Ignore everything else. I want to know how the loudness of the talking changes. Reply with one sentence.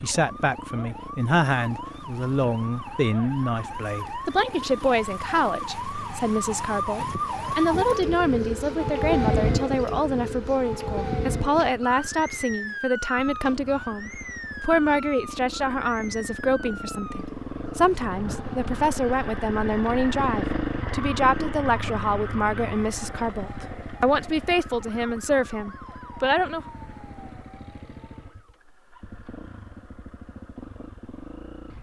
The volume of the talking stays about the same.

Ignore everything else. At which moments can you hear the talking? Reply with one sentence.
The talking can be heard from 0.0 to 26.6 s.